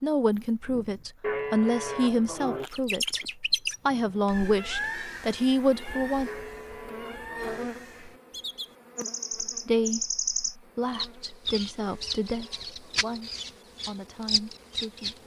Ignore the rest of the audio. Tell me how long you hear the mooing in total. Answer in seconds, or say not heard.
4 s.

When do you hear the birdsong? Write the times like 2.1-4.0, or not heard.
2.7-15.2.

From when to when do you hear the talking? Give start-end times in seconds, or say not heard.
0.0-6.3, 9.4-15.2.